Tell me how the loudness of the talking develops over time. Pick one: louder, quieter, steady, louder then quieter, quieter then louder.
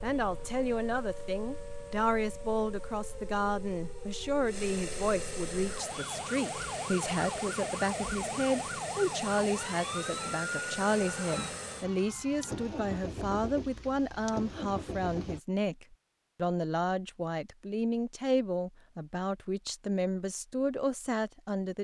steady.